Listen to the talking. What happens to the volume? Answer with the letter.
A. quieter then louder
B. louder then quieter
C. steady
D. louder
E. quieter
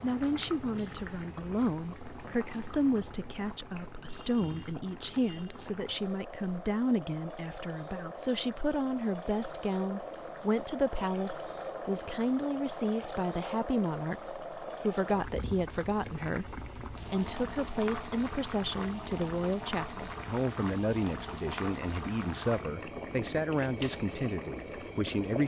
C.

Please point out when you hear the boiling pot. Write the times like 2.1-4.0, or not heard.
0.0-25.4.